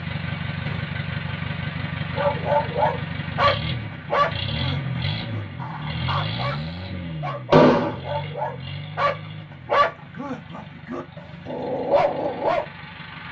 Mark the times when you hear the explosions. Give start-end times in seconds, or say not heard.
7.5-8.0.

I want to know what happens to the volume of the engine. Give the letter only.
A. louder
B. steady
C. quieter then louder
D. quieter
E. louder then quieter
D.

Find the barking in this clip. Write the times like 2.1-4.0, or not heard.
2.1-12.7.